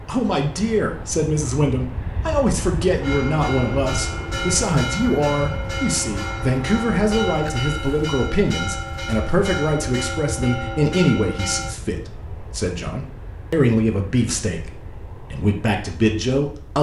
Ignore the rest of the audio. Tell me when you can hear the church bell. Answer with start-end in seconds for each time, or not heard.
3.0-11.8.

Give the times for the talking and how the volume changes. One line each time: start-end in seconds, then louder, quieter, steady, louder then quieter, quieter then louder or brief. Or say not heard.
0.1-16.7 steady.